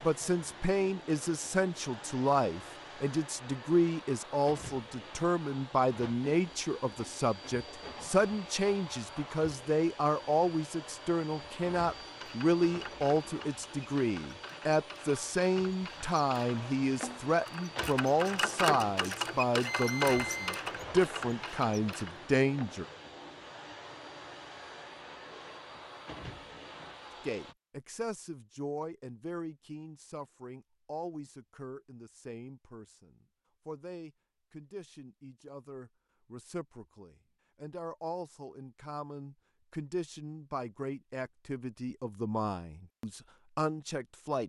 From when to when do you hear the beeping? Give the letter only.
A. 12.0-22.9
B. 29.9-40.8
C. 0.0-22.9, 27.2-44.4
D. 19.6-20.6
D.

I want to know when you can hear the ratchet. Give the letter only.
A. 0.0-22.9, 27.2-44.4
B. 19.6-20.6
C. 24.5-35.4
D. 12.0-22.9
D.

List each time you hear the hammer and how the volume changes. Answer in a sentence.
You can't hear the hammer here.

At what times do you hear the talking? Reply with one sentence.
You can hear the talking from 0.0 to 22.9 s and from 27.2 to 44.4 s.